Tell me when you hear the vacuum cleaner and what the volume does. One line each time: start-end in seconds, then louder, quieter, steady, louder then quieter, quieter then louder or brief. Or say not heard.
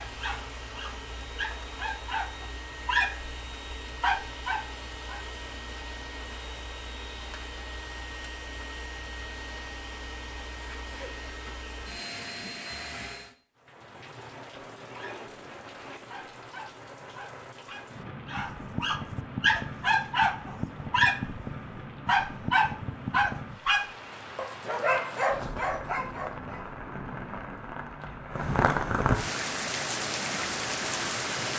0.0-13.3 steady.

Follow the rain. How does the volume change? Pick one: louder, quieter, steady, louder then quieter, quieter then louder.
louder.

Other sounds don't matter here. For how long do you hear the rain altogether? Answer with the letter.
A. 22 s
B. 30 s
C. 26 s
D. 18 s
D.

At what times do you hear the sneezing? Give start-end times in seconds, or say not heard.
10.7-11.2.